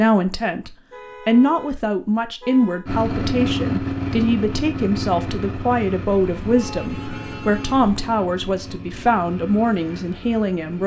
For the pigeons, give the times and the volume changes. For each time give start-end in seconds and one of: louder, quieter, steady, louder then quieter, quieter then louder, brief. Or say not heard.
not heard.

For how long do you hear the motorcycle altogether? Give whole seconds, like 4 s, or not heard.
8 s.